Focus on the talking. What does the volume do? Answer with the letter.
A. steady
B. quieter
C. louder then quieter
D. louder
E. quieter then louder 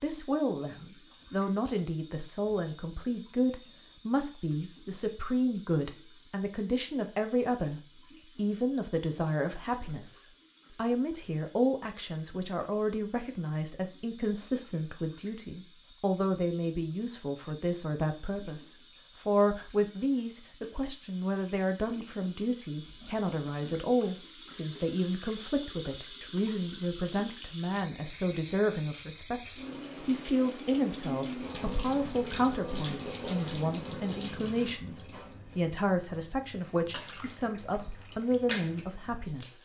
A.